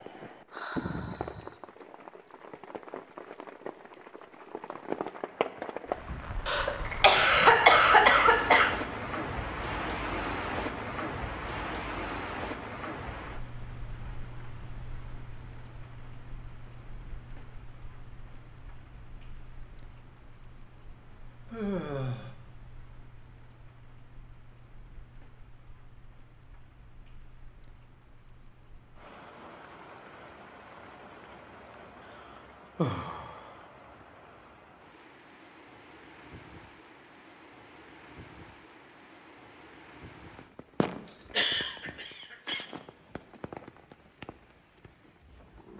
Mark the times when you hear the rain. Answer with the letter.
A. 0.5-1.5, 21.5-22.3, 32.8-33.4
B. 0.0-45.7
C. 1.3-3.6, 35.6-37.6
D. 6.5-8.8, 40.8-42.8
B.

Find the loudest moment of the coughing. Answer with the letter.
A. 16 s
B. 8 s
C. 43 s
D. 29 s
B.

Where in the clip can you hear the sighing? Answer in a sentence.
You can hear the sighing from 0.5 to 1.5 s, from 21.5 to 22.3 s and from 32.8 to 33.4 s.